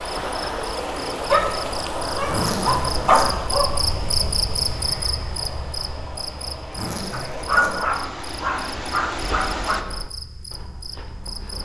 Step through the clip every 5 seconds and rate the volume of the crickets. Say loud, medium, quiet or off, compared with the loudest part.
loud, medium, medium.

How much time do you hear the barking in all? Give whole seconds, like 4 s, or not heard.
5 s.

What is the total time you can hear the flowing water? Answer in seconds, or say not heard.
10 s.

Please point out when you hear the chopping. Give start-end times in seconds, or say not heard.
9.1-11.6.